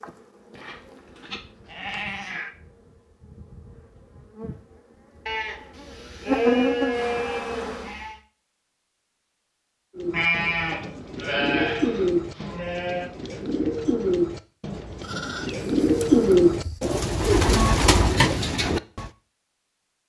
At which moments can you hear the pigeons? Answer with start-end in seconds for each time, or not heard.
9.9-19.1.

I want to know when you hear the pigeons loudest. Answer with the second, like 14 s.
16 s.